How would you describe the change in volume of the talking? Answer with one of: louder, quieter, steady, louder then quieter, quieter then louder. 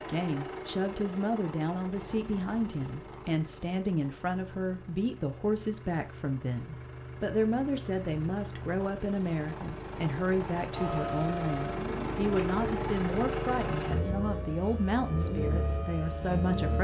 steady.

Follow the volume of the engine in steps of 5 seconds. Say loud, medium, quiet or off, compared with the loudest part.
medium, medium, loud, loud.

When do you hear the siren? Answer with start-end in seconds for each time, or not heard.
10.7-16.7.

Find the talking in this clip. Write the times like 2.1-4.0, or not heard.
0.1-16.7.